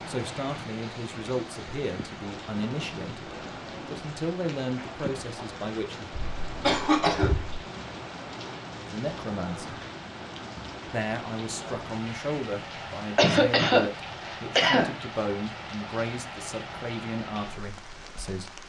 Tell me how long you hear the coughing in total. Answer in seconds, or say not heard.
3 s.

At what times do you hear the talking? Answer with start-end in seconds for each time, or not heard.
0.1-6.2, 8.8-9.8, 10.8-18.6.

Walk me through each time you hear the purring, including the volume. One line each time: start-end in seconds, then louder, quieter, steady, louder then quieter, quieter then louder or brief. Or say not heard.
not heard.